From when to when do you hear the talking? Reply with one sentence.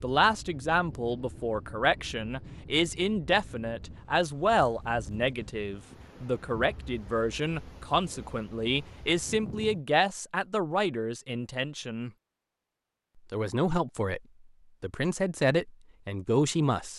The talking can be heard from 0.0 to 12.1 s, from 13.3 to 14.2 s and from 14.8 to 16.9 s.